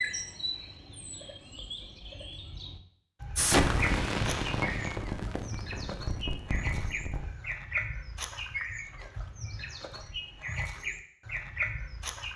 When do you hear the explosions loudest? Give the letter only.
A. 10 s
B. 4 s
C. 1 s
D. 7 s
B.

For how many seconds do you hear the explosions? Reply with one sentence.
The explosions can be heard for 4 seconds in total.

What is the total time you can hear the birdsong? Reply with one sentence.
You can hear the birdsong for 12 seconds altogether.